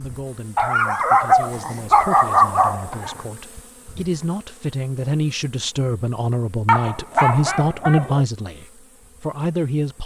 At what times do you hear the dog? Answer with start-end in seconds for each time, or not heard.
0.6-3.1, 6.7-8.2.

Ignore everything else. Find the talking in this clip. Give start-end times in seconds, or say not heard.
0.0-10.0.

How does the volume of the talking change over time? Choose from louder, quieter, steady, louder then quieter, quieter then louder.
louder.